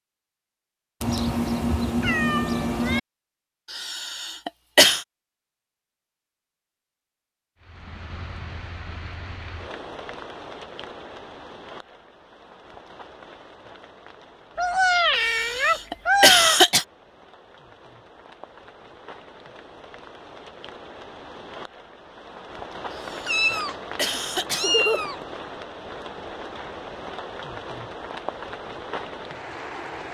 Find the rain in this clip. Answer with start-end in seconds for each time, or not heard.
7.6-30.0.